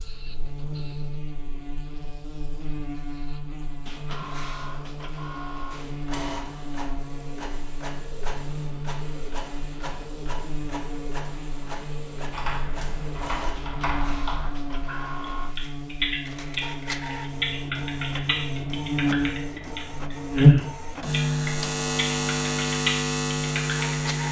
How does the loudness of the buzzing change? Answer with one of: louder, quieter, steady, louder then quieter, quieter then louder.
louder.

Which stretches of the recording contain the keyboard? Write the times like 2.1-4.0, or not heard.
12.3-24.1.